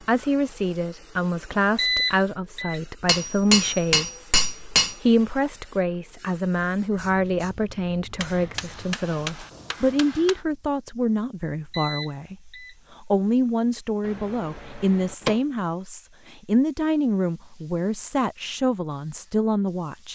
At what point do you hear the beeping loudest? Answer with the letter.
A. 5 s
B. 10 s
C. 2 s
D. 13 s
C.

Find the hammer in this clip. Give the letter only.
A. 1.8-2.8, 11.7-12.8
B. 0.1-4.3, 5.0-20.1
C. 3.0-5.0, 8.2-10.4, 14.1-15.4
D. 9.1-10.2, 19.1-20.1
C.